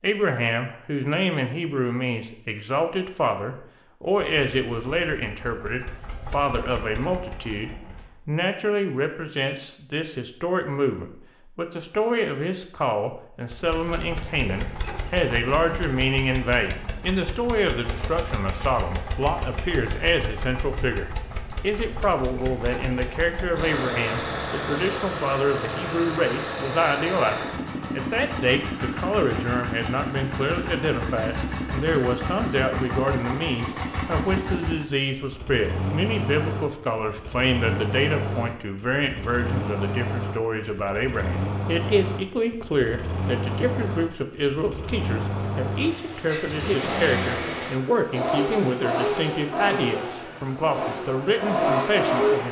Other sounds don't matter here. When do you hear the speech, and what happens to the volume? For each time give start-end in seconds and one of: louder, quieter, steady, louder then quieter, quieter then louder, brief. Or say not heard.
0.0-52.4 steady.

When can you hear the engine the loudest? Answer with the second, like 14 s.
52 s.